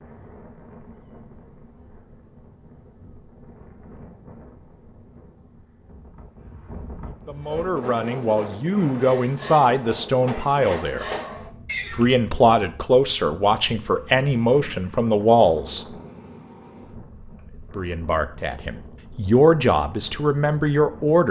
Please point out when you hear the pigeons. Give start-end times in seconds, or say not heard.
not heard.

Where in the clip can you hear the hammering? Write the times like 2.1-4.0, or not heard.
9.8-11.5.